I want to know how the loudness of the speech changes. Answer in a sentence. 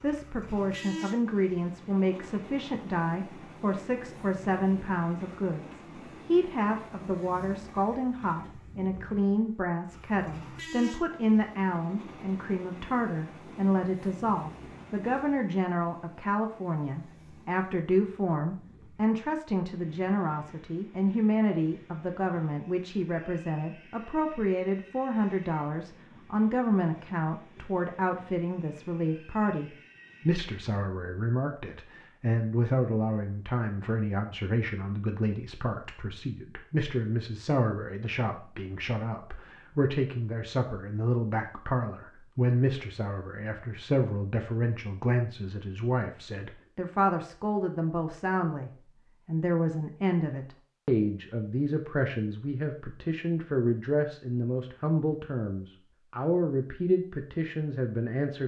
The loudness of the speech stays about the same.